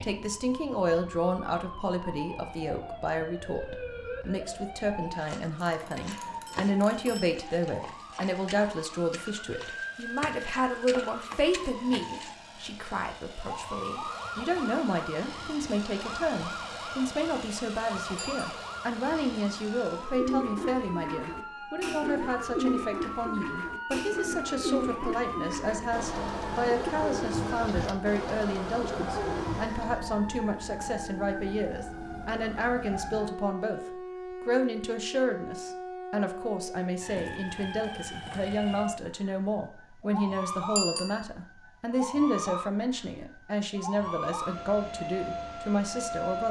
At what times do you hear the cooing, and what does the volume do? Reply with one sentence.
You can hear the cooing from 19.9 to 30.0 s, at a steady volume.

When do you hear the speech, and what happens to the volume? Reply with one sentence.
The speech can be heard from 0.0 to 46.4 s, at a steady volume.